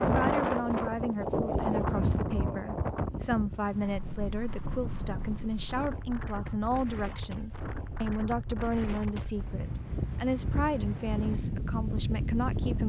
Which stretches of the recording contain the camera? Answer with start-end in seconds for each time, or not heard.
not heard.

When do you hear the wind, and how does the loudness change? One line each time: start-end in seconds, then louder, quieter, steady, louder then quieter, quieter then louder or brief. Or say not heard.
0.0-12.8 quieter then louder.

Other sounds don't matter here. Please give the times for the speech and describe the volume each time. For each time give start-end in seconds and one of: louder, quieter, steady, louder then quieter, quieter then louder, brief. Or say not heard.
0.0-12.8 steady.